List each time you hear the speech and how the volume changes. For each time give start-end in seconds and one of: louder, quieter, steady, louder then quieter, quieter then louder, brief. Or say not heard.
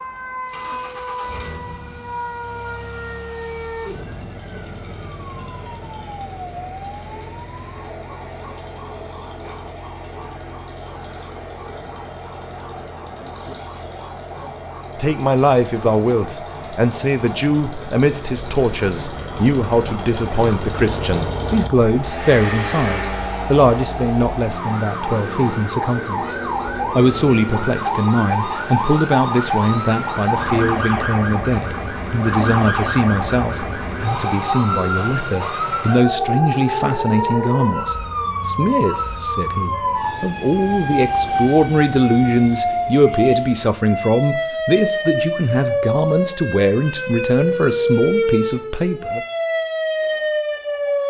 14.9-49.2 steady.